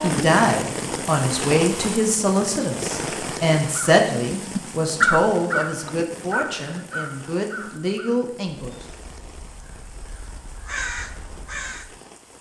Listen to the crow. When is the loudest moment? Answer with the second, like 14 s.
5 s.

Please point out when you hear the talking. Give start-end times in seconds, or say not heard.
0.0-8.8.